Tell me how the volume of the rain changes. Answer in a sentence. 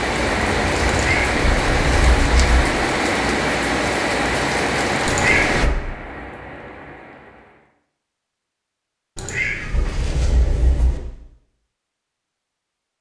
The volume of the rain goes down.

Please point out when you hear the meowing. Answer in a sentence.
You can hear the meowing from 0.8 to 2.6 s, from 5.0 to 5.8 s and from 9.2 to 11.0 s.